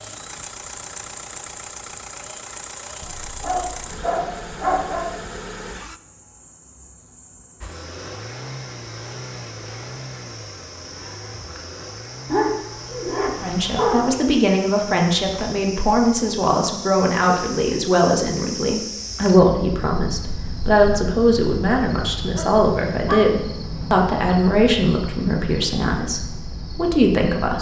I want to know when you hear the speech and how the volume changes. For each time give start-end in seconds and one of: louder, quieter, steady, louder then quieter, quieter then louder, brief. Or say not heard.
13.4-27.5 steady.